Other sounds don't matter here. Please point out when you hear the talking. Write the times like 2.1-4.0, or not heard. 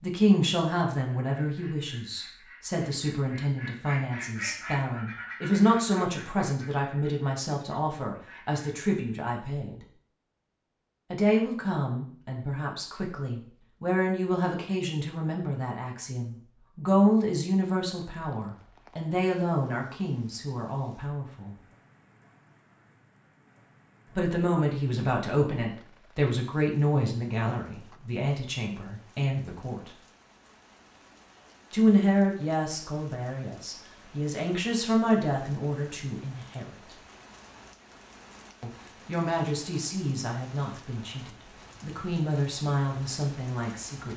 0.0-9.8, 11.1-21.6, 24.1-29.9, 31.7-37.0, 38.6-44.1.